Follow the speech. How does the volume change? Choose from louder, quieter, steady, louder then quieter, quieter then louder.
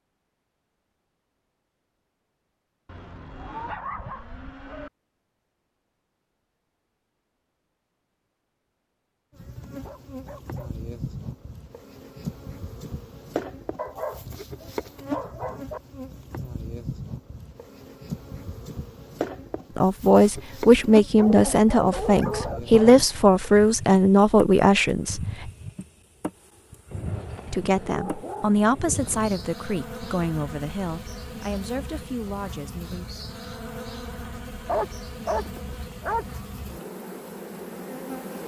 quieter.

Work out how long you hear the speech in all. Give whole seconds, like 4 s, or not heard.
11 s.